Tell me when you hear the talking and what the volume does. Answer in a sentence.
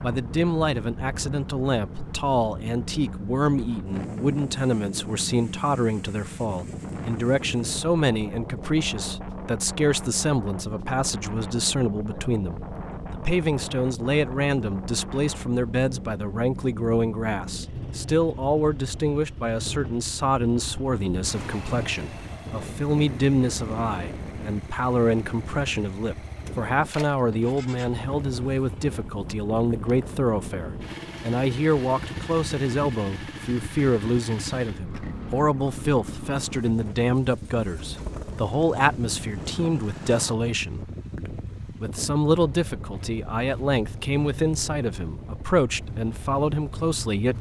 The talking can be heard from 0.0 to 47.3 s, at a steady volume.